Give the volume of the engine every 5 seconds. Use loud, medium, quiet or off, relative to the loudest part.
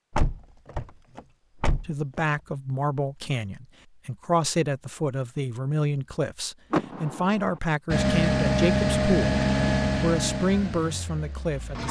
off, loud, medium.